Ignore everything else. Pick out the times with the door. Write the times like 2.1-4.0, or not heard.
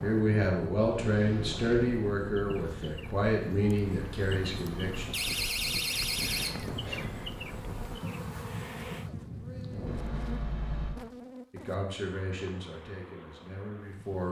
1.1-2.0, 5.1-6.8, 9.8-11.0.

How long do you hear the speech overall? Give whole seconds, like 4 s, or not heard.
8 s.